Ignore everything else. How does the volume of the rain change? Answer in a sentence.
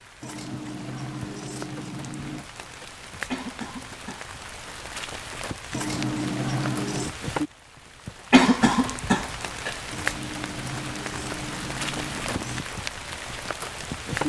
The volume of the rain goes up.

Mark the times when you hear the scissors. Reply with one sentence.
The scissors can be heard from 0.2 to 2.5 s, from 5.7 to 7.2 s and from 9.9 to 12.7 s.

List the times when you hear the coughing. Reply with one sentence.
You can hear the coughing from 3.3 to 4.3 s and from 8.3 to 9.8 s.